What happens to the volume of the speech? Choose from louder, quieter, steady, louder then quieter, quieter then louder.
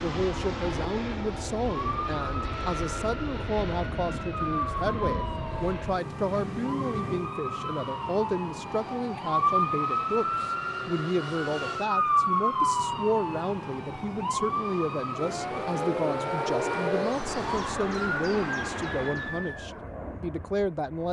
steady.